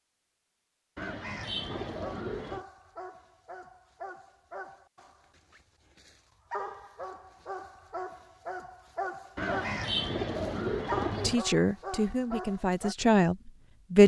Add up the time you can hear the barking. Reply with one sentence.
You can hear the barking for 11 seconds altogether.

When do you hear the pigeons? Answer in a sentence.
You can hear the pigeons from 0.9 to 2.6 s and from 9.3 to 11.4 s.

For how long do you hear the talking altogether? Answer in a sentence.
You can hear the talking for 3 seconds altogether.